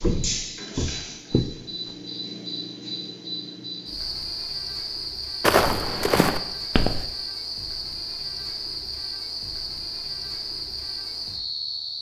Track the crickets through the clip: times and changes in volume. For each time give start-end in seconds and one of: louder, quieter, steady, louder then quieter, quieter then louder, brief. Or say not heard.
0.0-11.9 steady.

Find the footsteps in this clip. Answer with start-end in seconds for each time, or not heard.
0.0-1.9, 5.4-7.0.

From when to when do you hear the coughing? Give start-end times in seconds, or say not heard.
not heard.